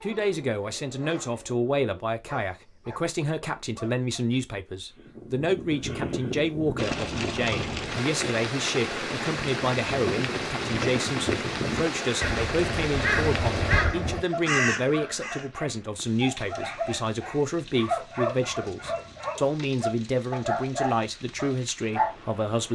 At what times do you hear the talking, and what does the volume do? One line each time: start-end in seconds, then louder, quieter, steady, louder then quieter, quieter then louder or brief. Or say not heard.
0.0-22.6 steady.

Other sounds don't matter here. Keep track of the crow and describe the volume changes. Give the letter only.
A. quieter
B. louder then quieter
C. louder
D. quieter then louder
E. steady
C.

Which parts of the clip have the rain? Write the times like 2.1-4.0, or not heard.
6.8-22.6.